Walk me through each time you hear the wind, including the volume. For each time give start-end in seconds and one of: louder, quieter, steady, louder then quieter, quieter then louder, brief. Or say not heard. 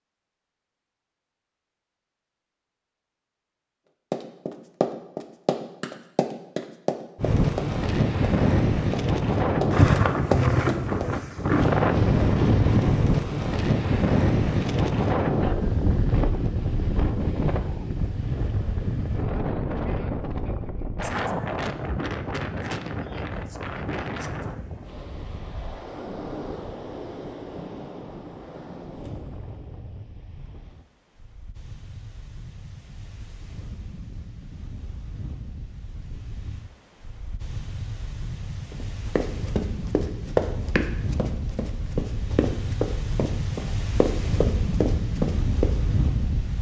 7.2-46.5 quieter then louder.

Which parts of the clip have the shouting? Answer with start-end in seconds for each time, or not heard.
not heard.